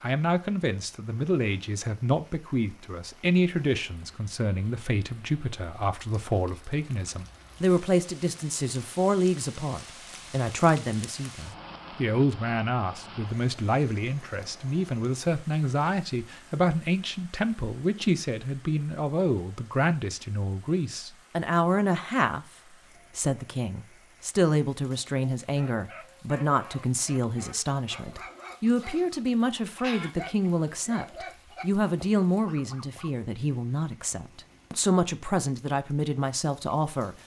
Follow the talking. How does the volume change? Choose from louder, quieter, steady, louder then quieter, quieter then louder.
steady.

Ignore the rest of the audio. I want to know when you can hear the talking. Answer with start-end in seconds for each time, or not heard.
0.0-22.4, 23.1-37.2.